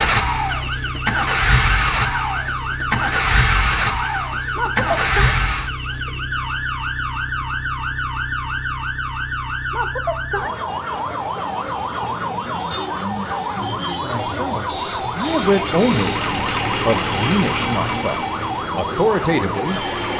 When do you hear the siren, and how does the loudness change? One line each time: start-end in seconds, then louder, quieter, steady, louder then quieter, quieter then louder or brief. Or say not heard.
0.0-20.1 steady.